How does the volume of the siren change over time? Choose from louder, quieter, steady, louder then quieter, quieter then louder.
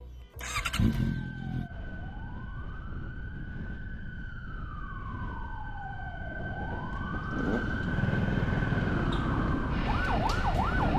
louder.